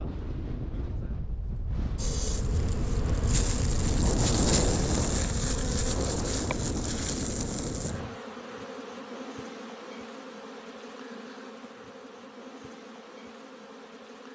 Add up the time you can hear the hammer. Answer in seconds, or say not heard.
not heard.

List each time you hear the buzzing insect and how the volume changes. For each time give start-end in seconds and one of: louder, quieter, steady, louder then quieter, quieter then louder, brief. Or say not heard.
1.9-14.3 quieter.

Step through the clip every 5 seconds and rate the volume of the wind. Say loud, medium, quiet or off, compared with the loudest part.
loud, loud, off.